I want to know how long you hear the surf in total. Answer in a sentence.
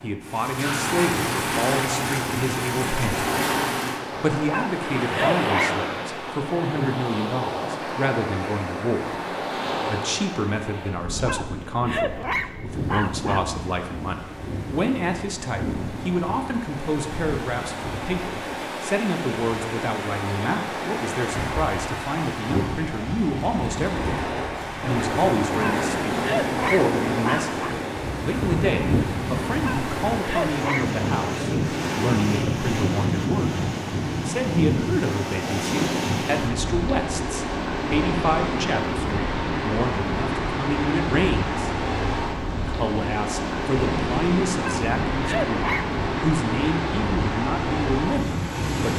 The surf can be heard for 49 seconds in total.